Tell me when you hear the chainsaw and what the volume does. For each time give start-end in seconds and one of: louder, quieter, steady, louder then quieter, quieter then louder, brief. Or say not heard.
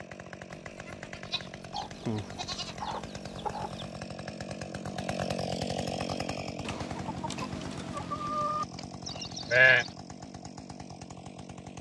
0.0-11.7 louder then quieter.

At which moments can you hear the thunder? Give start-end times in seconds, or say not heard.
not heard.